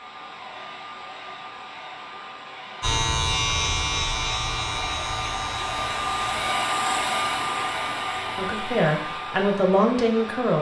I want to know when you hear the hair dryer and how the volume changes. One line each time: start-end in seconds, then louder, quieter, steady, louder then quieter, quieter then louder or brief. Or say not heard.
0.0-10.5 louder then quieter.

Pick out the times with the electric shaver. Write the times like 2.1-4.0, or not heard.
2.8-6.4.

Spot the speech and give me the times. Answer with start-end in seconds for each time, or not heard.
8.3-10.5.